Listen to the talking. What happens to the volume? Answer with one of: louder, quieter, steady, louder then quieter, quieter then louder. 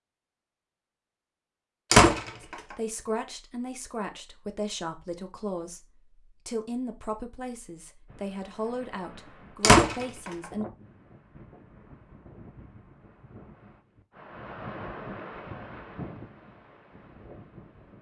steady.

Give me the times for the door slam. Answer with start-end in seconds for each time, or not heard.
1.9-2.5, 9.6-10.3.